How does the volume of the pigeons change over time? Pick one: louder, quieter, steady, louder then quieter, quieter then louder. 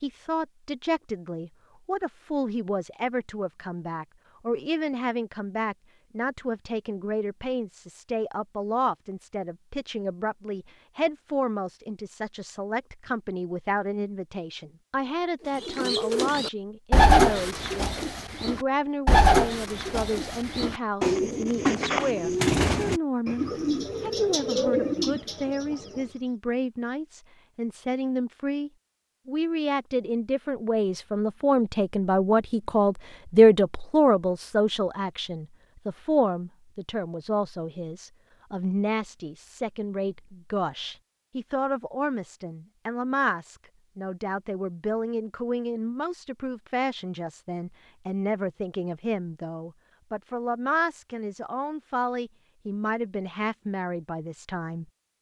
quieter.